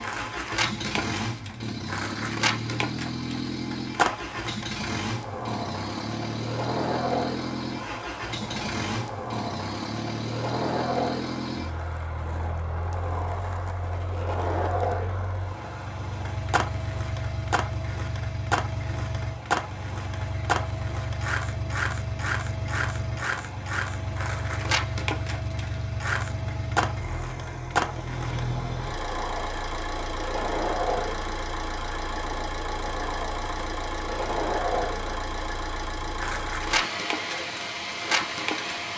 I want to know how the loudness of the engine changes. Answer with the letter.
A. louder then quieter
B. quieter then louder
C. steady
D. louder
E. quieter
C.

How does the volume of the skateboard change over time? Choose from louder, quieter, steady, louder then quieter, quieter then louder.
steady.